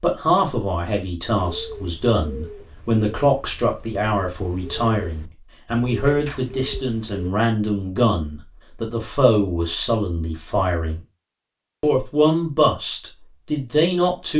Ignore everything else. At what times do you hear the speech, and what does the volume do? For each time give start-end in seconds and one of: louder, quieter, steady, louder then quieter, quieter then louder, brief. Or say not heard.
0.0-11.0 steady
11.8-14.3 brief.